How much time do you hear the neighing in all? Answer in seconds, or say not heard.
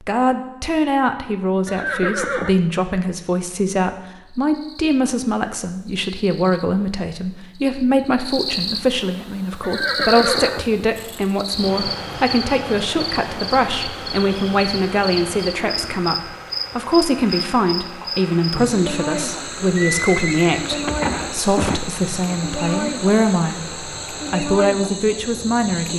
4 s.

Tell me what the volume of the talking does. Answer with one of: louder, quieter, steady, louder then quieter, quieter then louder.
steady.